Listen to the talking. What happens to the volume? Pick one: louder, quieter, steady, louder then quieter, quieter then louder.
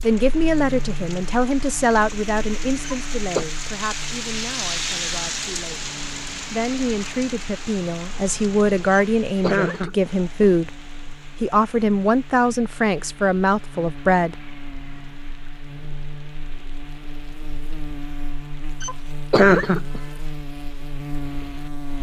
quieter then louder.